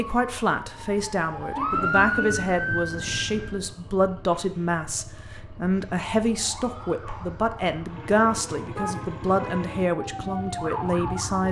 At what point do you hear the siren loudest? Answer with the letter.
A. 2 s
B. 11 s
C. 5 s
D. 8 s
A.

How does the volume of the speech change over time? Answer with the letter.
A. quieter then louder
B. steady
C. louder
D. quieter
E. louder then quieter
B.